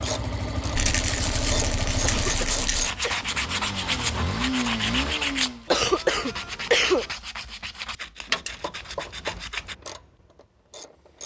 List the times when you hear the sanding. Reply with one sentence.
You can hear the sanding from 0.9 to 9.8 s.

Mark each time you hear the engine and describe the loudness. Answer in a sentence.
You can hear the engine from 0.0 to 5.7 s, getting quieter then louder.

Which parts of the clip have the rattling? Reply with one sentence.
The rattling can be heard from 0.8 to 2.9 s and from 8.2 to 8.7 s.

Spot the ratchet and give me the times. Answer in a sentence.
You can hear the ratchet from 0.0 to 3.0 s and from 8.4 to 11.2 s.